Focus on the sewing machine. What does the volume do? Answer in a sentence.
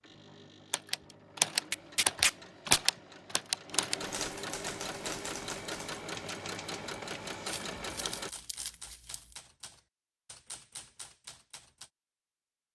The volume of the sewing machine goes up.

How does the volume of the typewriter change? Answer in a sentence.
The volume of the typewriter goes down.